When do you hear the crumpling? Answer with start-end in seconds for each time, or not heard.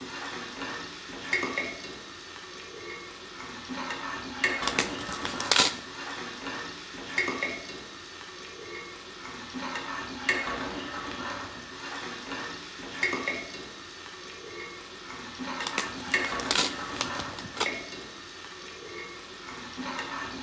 4.6-5.8, 15.6-17.7.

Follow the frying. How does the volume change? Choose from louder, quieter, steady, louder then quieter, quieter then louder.
steady.